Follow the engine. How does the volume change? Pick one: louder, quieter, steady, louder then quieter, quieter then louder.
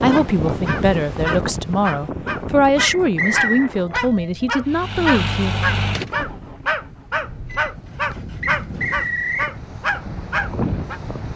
quieter then louder.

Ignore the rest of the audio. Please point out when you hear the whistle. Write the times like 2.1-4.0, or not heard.
2.8-3.7, 8.4-9.6.